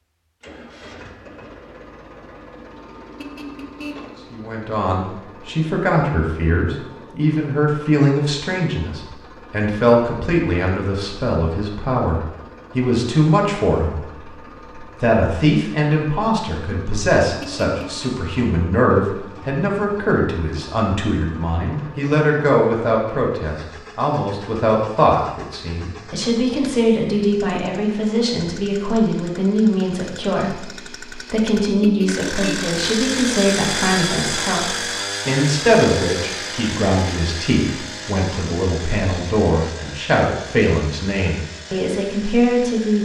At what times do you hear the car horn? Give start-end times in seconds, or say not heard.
3.1-4.2, 17.4-18.1, 31.8-32.7.